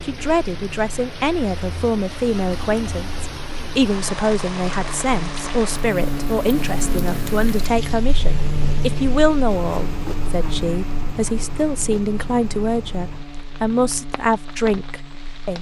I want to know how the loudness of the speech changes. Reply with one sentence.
The loudness of the speech stays about the same.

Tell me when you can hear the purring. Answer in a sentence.
You can't hear the purring here.